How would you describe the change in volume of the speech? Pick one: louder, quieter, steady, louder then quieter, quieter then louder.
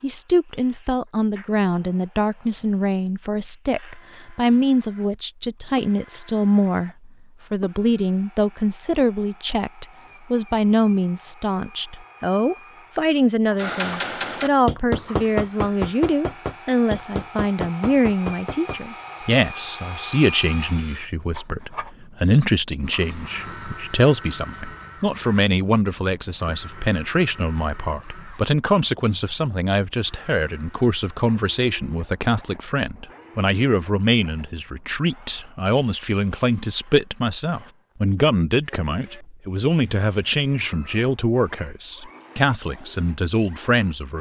steady.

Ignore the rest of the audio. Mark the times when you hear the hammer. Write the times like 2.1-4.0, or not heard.
13.6-18.8.